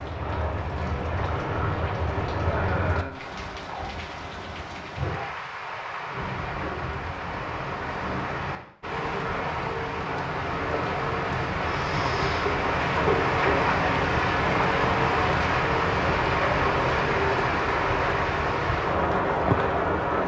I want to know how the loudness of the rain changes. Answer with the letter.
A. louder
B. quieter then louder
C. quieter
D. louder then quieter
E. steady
A.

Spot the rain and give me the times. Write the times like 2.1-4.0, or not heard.
0.0-20.2.